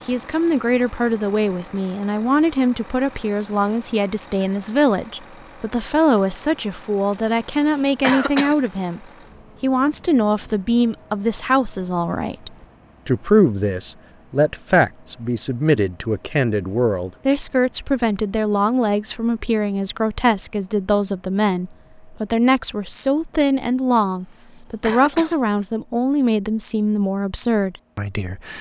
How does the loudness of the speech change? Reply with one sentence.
The volume of the speech stays about the same.